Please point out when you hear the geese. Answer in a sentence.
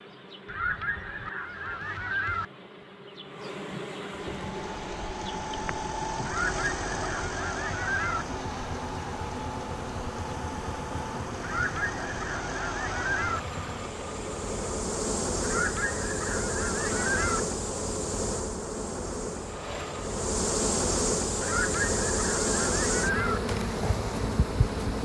The geese can be heard from 0.5 to 2.5 s, from 6.2 to 8.2 s, from 11.4 to 13.4 s, from 15.4 to 17.4 s and from 21.4 to 23.4 s.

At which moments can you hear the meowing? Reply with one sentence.
The meowing can't be heard in this clip.